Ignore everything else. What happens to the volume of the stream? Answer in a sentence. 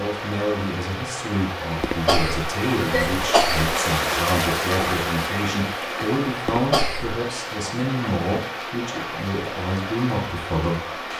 The loudness of the stream goes up, then down.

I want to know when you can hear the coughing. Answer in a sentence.
The coughing can be heard from 1.8 to 3.7 s and from 6.5 to 7.2 s.